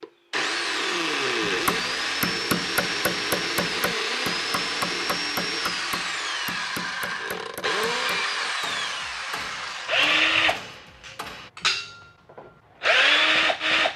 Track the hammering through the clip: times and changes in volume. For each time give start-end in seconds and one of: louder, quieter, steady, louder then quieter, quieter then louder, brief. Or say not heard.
1.4-11.5 quieter.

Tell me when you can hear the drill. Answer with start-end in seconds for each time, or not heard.
0.0-13.9.